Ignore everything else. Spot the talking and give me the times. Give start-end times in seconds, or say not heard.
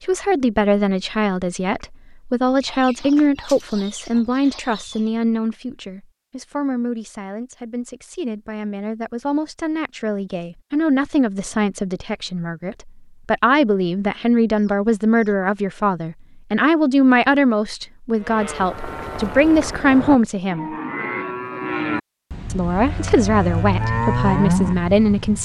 0.0-20.8, 22.5-25.4.